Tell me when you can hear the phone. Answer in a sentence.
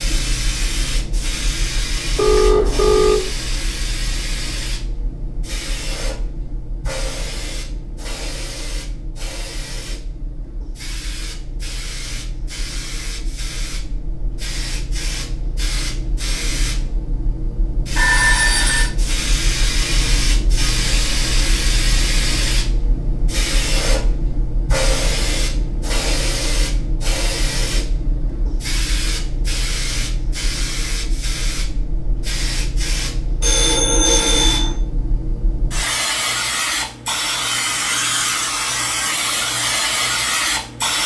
The phone can be heard from 2.1 to 3.2 s, from 17.9 to 18.9 s and from 33.4 to 34.8 s.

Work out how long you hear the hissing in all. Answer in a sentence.
The hissing can be heard for 41 seconds in total.